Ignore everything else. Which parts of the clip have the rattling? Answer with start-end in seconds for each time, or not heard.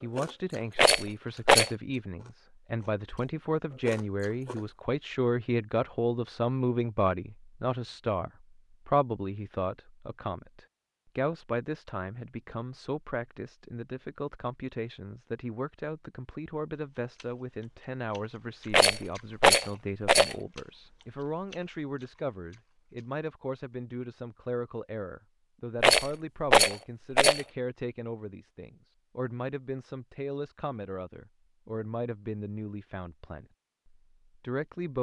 0.8-1.7, 18.7-20.4, 25.8-27.4.